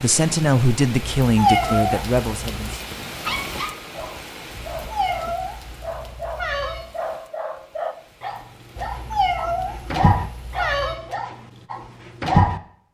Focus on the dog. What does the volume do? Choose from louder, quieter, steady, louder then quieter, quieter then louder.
louder then quieter.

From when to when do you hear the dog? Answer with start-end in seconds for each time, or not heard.
3.2-12.6.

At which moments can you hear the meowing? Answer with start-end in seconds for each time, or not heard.
1.2-2.6, 4.5-6.8, 8.8-10.9.